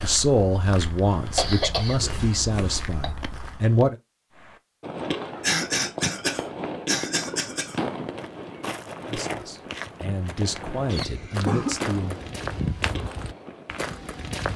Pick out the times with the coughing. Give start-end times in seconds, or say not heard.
1.4-3.0, 5.4-7.8, 10.9-11.8.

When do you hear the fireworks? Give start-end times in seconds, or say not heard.
4.3-14.0.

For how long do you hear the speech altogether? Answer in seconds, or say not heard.
7 s.